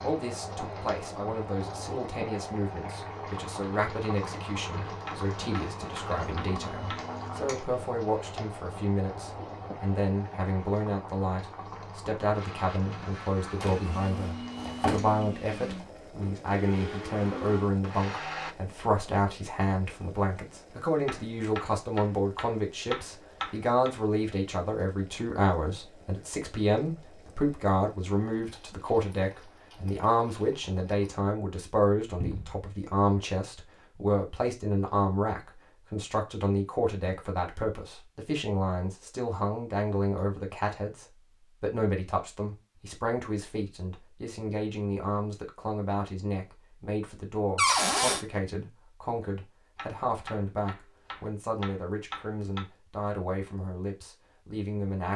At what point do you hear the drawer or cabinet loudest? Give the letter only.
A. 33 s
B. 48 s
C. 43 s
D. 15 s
B.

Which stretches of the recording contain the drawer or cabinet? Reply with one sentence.
You can hear the drawer or cabinet from 13.6 to 15.2 s, from 32.2 to 32.7 s and from 47.5 to 48.2 s.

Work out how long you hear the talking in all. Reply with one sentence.
The talking can be heard for 55 seconds in total.